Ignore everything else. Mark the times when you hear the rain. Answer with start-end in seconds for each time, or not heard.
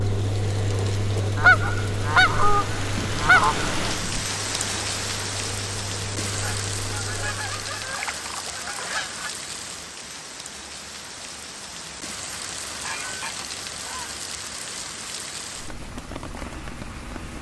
0.0-17.3.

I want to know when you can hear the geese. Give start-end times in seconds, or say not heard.
1.4-4.2, 6.3-9.3, 12.7-14.2.